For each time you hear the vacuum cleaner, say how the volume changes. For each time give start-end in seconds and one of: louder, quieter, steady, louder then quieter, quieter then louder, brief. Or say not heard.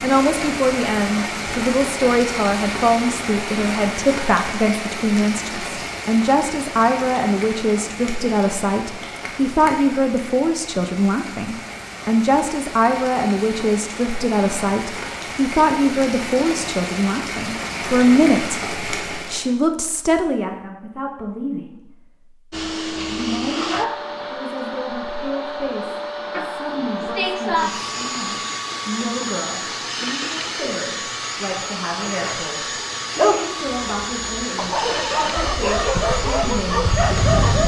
22.5-37.6 steady.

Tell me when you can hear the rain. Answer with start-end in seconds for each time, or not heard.
0.0-19.5.